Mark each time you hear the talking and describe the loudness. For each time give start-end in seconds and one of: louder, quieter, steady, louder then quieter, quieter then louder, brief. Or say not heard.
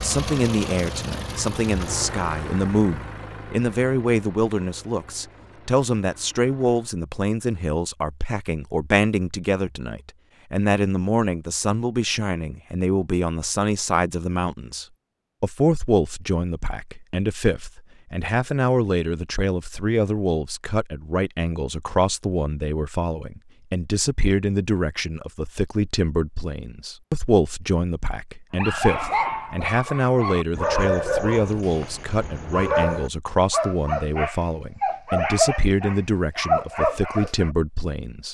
0.0-38.2 steady.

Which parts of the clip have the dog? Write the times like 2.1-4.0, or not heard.
28.6-37.5.